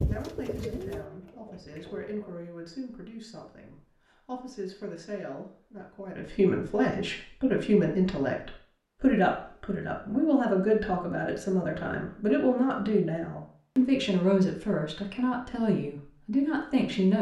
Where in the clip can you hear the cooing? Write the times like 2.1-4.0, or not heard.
0.0-2.4.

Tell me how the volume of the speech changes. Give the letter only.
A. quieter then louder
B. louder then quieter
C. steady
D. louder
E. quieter
D.